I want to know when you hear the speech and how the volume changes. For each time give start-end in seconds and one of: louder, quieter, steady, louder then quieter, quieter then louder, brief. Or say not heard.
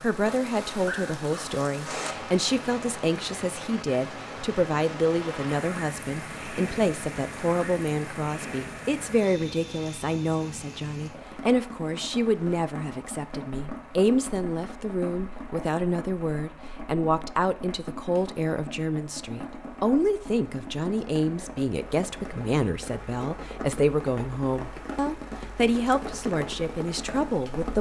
0.0-27.7 steady.